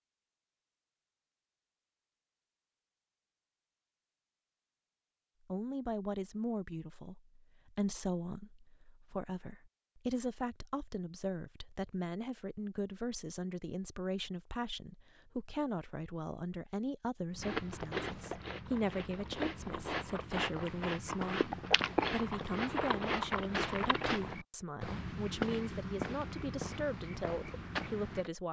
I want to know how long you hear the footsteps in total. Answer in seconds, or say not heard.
11 s.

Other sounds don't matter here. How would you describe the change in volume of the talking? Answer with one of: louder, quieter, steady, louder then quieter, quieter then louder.
steady.